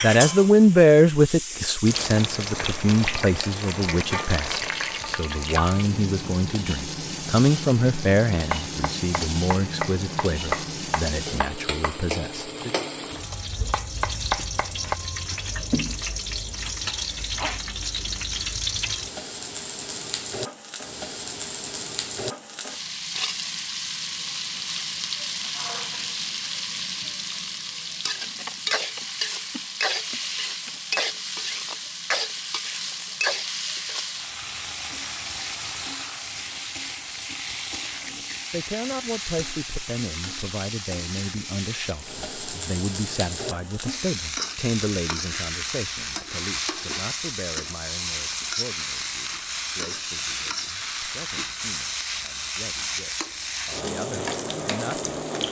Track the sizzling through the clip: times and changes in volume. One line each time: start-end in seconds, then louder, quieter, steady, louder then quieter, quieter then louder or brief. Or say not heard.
0.0-55.4 steady.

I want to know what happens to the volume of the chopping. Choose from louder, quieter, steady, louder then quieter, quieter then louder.
quieter then louder.